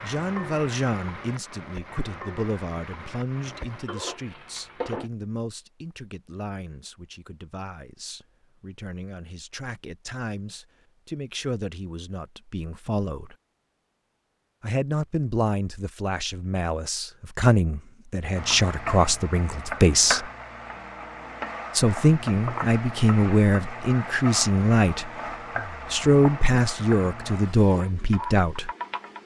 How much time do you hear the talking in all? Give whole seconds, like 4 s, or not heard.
25 s.